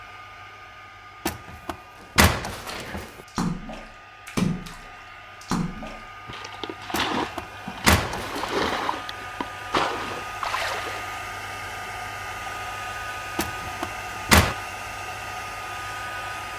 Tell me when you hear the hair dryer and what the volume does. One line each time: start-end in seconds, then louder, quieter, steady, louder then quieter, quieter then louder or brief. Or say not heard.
0.0-16.5 louder.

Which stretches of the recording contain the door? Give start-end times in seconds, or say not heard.
1.2-3.1, 6.9-8.8, 13.3-14.6.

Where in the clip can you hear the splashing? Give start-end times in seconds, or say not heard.
3.2-11.1.